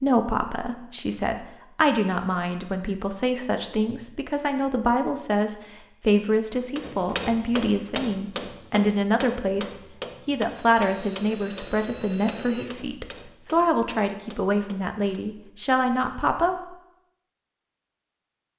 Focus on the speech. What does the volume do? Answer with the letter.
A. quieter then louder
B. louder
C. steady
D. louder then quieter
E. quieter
C.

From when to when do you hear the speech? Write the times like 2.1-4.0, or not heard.
0.0-16.6.